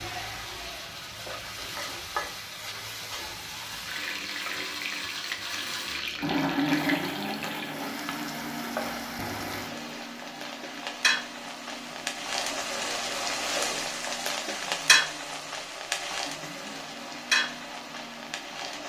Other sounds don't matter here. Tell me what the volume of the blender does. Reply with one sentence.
The loudness of the blender goes up, then down.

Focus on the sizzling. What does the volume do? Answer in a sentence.
The volume of the sizzling goes up.